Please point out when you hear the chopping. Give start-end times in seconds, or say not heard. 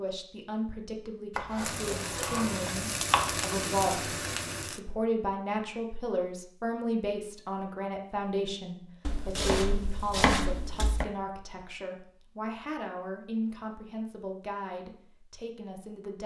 1.4-3.5, 9.1-11.1.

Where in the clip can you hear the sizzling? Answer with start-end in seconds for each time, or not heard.
1.6-4.8.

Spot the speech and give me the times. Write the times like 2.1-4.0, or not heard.
0.0-16.2.